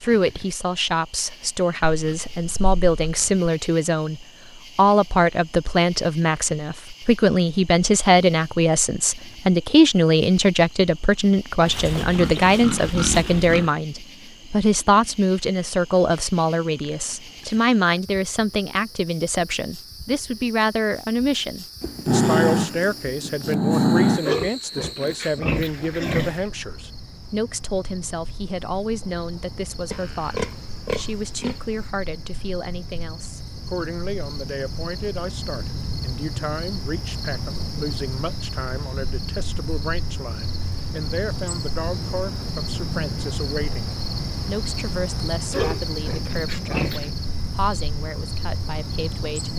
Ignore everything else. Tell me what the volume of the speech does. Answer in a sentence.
The loudness of the speech goes down.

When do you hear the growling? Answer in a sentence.
The growling can be heard from 21.8 to 24.3 s.